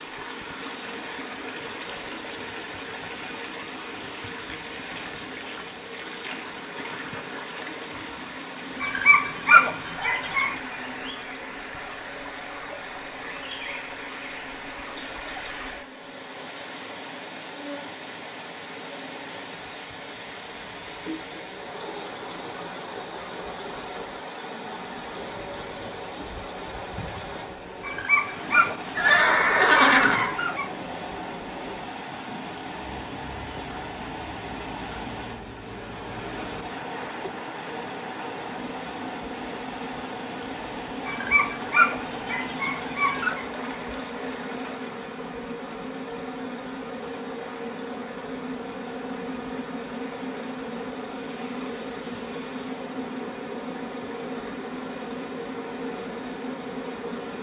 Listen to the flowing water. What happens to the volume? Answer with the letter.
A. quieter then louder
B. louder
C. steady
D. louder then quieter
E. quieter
E.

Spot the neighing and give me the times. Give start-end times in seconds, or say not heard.
28.9-30.4.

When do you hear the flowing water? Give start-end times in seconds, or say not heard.
0.0-57.3.